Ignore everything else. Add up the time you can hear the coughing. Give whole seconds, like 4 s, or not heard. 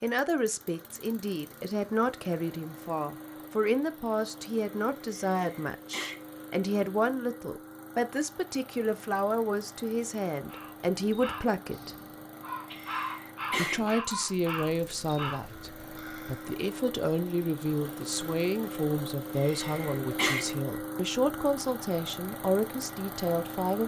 3 s.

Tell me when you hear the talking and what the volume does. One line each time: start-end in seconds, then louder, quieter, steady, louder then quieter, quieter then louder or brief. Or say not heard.
0.0-11.9 steady
13.6-23.8 steady.